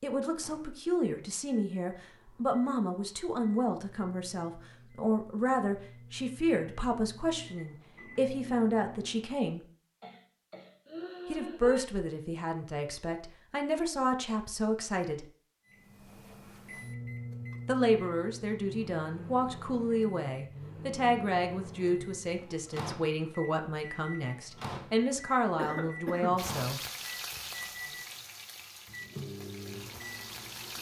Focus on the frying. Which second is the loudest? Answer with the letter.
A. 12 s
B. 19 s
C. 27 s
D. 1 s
C.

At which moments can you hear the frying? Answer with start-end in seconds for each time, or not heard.
26.4-30.7.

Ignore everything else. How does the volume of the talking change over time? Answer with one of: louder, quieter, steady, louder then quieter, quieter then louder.
steady.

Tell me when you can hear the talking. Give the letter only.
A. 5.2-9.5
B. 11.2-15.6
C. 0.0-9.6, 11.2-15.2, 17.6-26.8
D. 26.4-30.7
C.